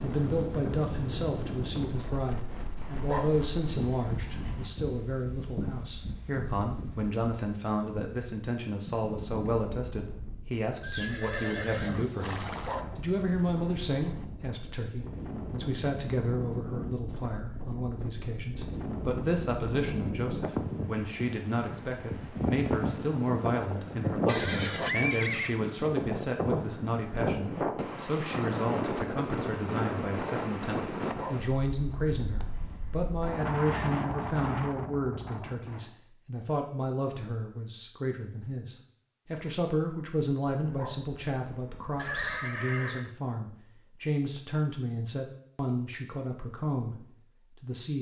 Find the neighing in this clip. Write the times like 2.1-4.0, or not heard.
10.8-12.8, 24.2-25.6, 42.0-43.1.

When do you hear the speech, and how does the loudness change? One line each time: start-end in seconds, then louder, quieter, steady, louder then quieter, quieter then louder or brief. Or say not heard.
0.0-47.9 steady.